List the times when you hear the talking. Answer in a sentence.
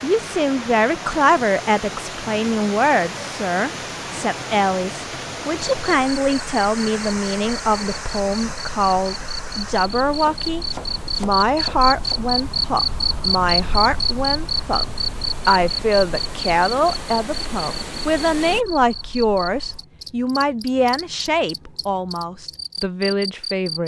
You can hear the talking from 0.0 to 14.8 s and from 15.4 to 23.8 s.